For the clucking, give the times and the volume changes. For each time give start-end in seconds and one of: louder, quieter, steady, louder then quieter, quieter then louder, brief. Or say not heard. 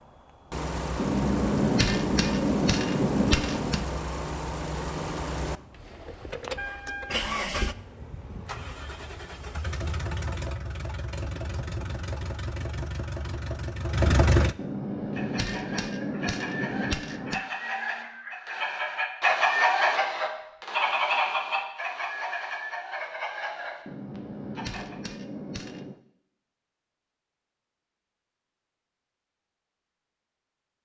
15.1-25.0 louder then quieter.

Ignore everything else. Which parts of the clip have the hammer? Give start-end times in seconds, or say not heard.
0.9-3.9, 14.6-17.4, 23.9-26.0.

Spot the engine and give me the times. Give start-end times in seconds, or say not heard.
0.0-14.6.